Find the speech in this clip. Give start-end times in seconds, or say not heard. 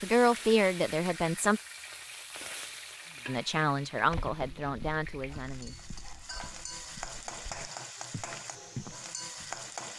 0.0-1.6, 3.2-5.8.